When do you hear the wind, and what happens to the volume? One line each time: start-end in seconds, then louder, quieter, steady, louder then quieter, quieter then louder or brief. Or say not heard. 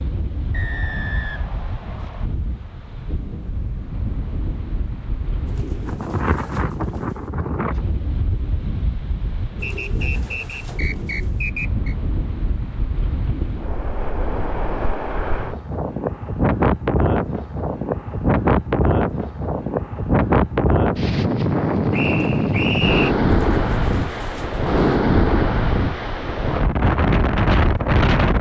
0.0-28.3 louder.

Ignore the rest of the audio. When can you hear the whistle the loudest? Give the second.
23 s.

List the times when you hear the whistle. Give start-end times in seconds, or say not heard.
0.5-2.3, 9.6-11.9, 21.9-23.1.